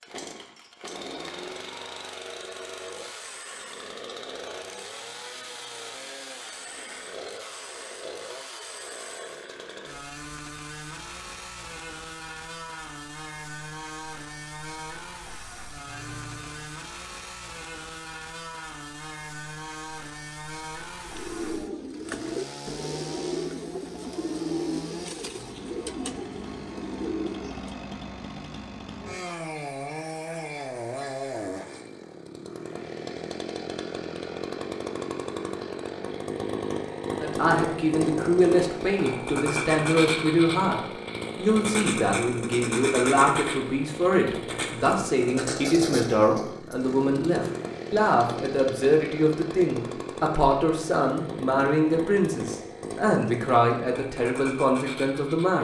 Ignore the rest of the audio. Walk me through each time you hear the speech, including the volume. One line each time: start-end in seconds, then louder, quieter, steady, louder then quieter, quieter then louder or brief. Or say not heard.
37.2-55.5 steady.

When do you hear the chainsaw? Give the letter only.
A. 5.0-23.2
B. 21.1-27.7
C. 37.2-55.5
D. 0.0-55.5
D.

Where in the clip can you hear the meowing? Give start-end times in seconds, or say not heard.
15.8-16.9.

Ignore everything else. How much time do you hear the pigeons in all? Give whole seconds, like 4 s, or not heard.
7 s.